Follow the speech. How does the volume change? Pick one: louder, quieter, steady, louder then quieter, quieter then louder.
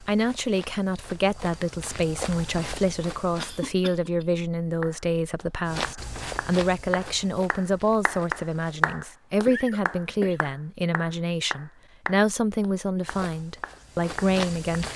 steady.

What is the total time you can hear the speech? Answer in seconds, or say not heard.
15 s.